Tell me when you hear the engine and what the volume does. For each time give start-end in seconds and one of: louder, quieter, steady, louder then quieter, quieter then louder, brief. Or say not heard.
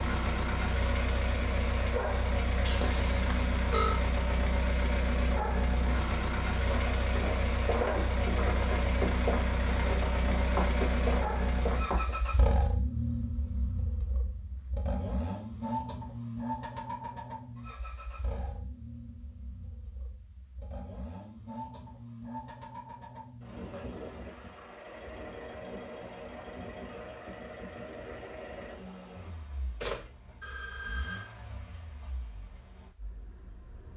0.0-33.9 quieter.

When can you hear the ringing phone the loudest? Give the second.
4 s.